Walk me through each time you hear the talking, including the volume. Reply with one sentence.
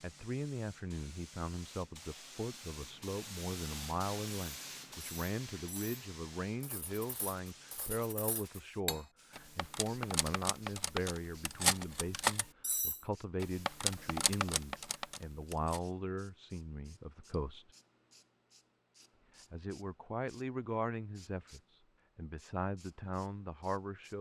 The talking can be heard from 0.0 to 17.7 s, at a steady volume; and from 19.5 to 24.1 s, getting quieter then louder.